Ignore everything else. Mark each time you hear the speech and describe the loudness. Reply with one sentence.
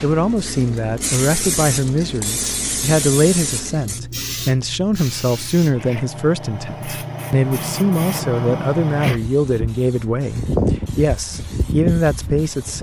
You can hear the speech from 0.0 to 12.7 s, at a steady volume.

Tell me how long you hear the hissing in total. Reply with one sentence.
The hissing can be heard for 13 seconds in total.